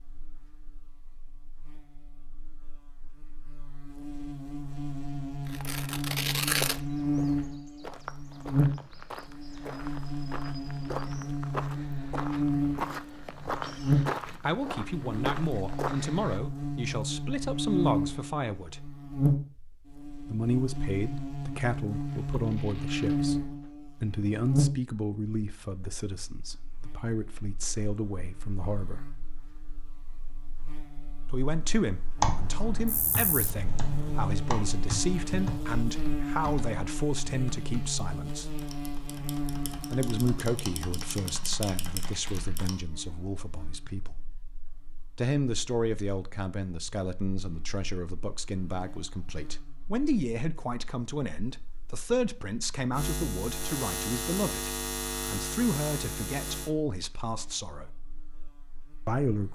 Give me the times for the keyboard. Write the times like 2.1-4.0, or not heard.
32.1-42.8.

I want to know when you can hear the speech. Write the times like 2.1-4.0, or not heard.
14.4-18.8, 20.3-29.1, 31.2-38.5, 39.9-44.2, 45.1-57.9, 59.0-59.5.